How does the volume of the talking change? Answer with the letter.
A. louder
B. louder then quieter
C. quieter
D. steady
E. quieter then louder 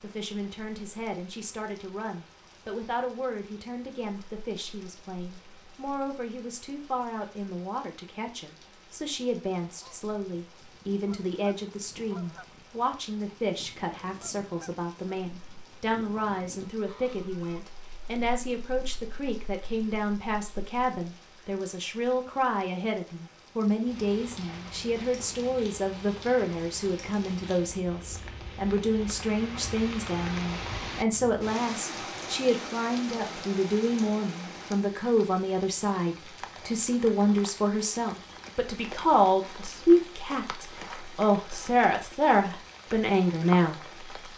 A.